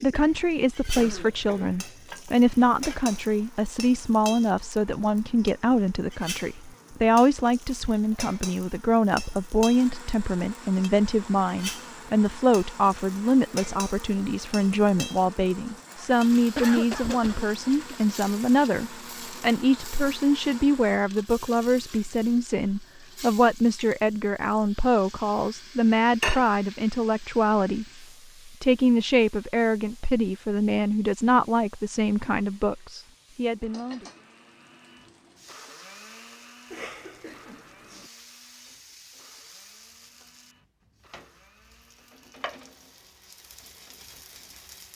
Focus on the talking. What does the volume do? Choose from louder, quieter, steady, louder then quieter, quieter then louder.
steady.